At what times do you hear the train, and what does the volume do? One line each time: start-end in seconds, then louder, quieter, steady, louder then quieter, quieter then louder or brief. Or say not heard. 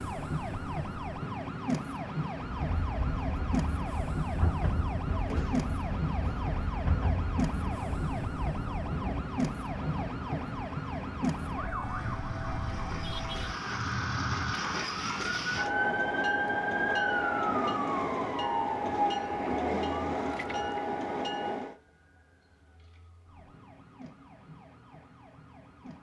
2.5-21.8 louder.